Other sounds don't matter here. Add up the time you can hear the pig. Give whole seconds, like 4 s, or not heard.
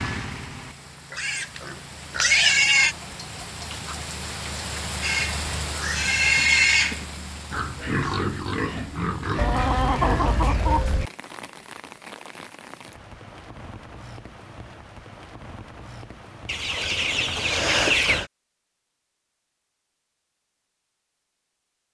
9 s.